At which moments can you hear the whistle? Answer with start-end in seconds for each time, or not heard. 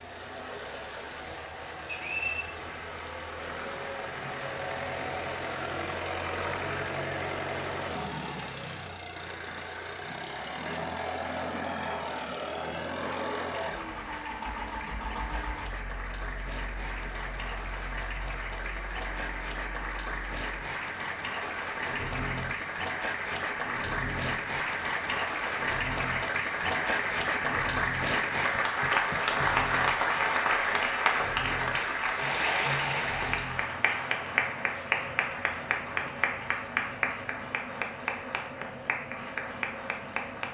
1.9-2.5.